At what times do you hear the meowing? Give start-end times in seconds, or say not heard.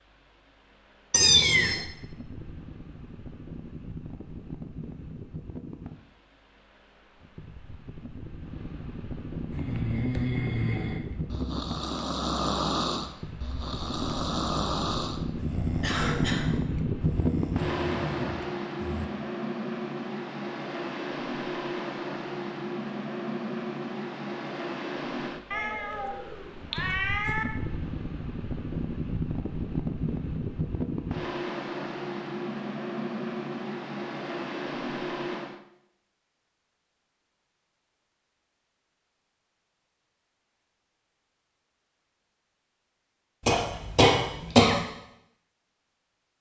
1.1-1.9, 25.5-27.4.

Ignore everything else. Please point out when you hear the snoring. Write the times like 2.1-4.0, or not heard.
9.5-19.1.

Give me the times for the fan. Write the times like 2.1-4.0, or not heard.
0.0-35.6.